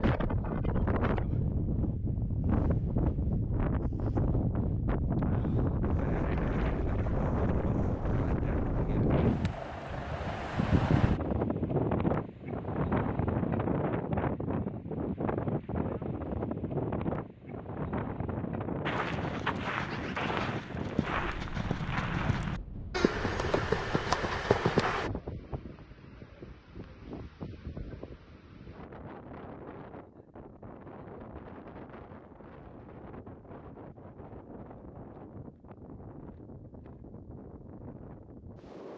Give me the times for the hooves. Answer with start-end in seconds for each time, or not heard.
18.9-25.1.